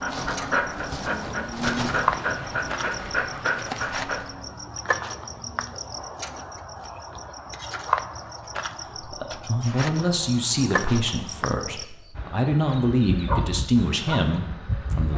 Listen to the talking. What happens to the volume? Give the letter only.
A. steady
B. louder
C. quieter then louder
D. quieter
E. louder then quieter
A.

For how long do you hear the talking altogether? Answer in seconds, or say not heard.
6 s.